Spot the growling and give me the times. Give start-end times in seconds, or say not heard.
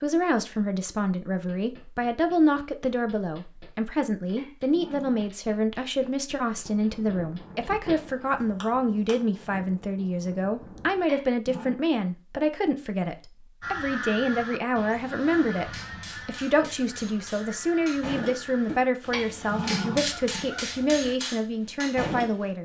4.3-5.4, 11.1-11.8, 19.1-20.5.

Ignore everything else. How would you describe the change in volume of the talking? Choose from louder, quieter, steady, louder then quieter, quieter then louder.
steady.